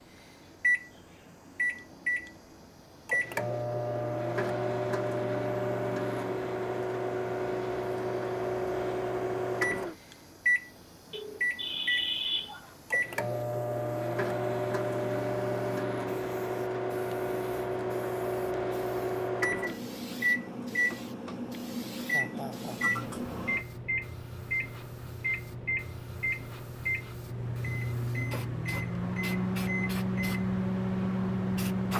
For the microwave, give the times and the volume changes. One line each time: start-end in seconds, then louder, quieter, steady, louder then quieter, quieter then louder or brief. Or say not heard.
0.1-31.9 steady.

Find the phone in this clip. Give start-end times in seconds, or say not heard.
11.1-12.7.